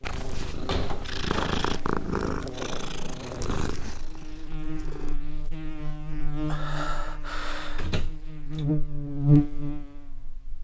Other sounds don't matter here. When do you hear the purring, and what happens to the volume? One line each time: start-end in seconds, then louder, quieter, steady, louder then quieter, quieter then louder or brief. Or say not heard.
0.0-5.2 louder then quieter.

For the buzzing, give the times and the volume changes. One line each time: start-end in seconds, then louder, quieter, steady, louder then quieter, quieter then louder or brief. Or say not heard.
0.0-10.6 louder.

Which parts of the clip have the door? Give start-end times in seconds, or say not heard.
0.5-1.1, 7.8-8.7.